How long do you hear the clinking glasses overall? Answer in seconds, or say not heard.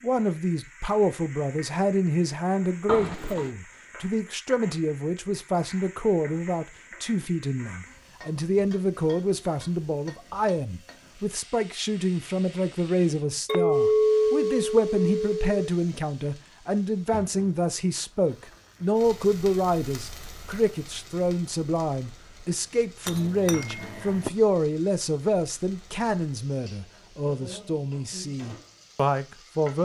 4 s.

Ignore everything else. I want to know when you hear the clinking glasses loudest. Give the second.
14 s.